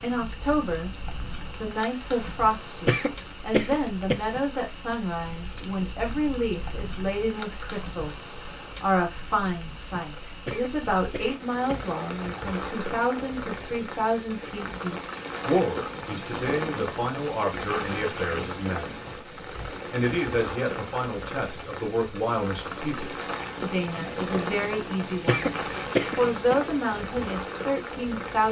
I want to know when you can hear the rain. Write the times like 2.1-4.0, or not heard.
0.0-28.4.